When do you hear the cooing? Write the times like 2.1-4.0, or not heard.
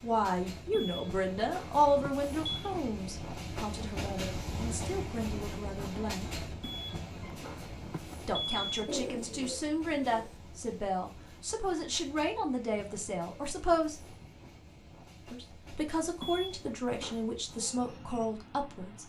8.8-10.3.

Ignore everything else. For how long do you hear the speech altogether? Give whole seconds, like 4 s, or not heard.
16 s.